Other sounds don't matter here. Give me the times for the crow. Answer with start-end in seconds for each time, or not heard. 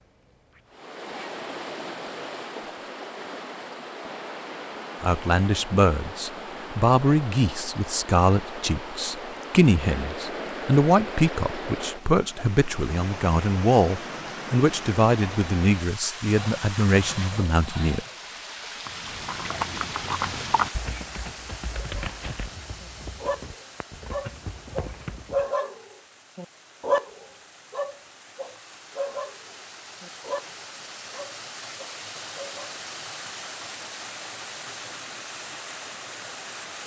not heard.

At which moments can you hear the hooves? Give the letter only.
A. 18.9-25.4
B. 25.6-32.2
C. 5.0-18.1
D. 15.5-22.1
A.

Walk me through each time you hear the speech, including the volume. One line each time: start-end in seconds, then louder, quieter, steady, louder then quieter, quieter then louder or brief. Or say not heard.
5.0-18.1 steady.